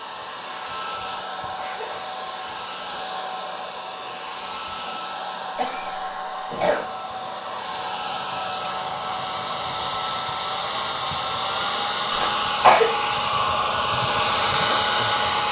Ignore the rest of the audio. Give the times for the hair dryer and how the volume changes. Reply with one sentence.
You can hear the hair dryer from 0.0 to 15.4 s, getting louder.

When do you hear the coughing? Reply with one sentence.
You can hear the coughing from 1.6 to 2.0 s, from 5.5 to 6.8 s and from 12.1 to 12.9 s.